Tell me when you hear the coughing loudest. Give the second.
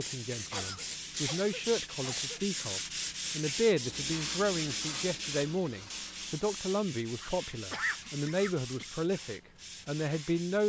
8 s.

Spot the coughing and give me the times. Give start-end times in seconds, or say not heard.
0.5-2.4, 7.2-8.9.